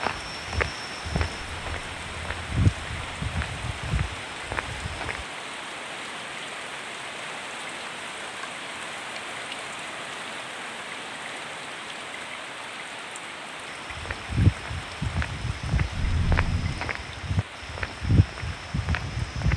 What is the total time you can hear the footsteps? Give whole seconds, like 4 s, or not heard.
11 s.